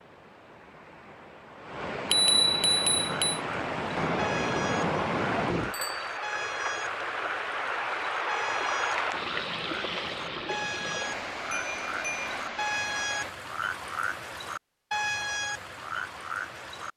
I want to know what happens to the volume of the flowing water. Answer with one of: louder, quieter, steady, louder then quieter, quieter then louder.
louder then quieter.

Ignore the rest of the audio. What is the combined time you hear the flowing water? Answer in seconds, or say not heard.
13 s.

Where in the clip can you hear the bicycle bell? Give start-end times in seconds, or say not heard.
2.1-3.4, 5.7-6.2, 11.5-12.2.